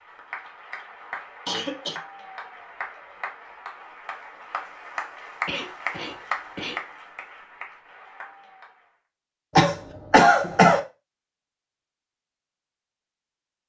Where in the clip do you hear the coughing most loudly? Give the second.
10 s.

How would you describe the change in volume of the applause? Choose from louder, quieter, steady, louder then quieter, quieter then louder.
louder then quieter.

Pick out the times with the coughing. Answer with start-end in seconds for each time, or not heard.
1.4-2.0, 5.5-6.8, 9.6-10.8.